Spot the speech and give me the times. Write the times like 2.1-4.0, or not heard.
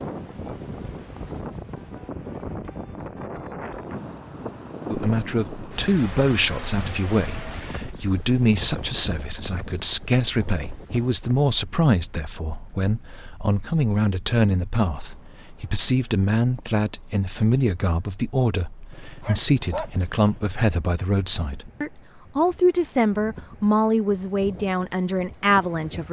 4.9-26.0.